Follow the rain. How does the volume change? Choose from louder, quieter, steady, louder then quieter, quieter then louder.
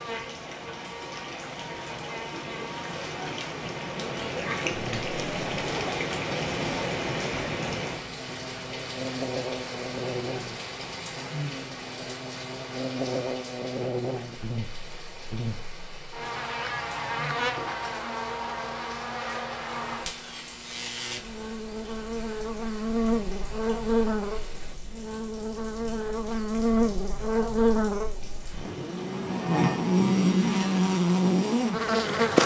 quieter.